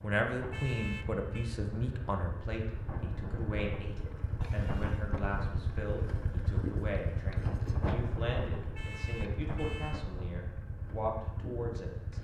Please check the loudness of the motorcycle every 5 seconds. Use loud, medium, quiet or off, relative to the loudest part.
loud, loud, medium.